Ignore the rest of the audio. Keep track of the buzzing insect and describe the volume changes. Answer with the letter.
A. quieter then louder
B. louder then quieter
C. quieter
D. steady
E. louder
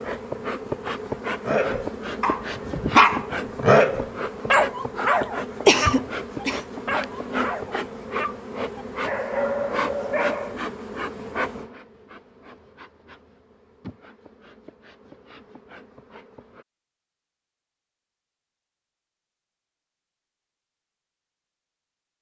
C.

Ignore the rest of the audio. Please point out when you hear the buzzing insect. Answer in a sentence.
The buzzing insect can be heard from 0.0 to 16.6 s.